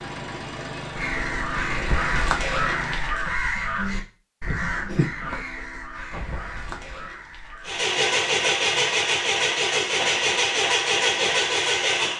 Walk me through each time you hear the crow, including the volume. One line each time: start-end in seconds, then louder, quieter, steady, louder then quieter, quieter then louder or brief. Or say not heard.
0.9-7.8 quieter.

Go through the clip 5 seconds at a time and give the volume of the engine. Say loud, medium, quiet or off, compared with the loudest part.
quiet, loud, loud.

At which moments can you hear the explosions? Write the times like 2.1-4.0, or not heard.
6.1-7.4.